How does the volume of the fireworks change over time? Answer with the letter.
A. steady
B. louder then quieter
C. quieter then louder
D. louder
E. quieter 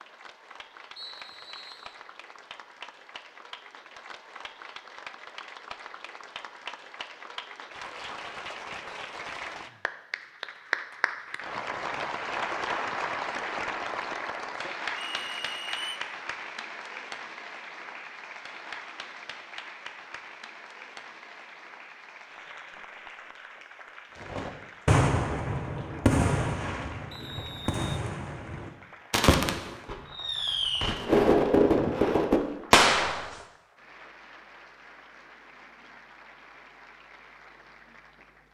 C.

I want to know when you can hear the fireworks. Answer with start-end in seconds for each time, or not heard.
24.3-33.2.